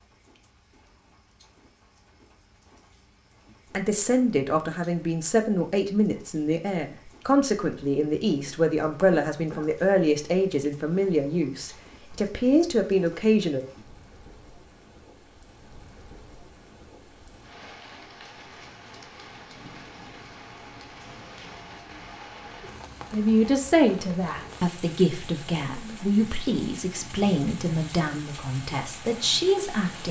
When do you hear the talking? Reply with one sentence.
You can hear the talking from 3.7 to 13.6 s and from 23.1 to 30.0 s.